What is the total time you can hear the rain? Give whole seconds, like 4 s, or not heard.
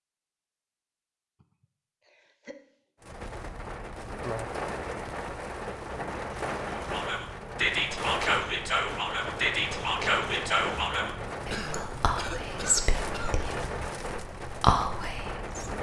13 s.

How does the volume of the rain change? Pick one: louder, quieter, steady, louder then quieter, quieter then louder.
steady.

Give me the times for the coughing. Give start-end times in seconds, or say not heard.
2.0-2.5, 11.5-13.4.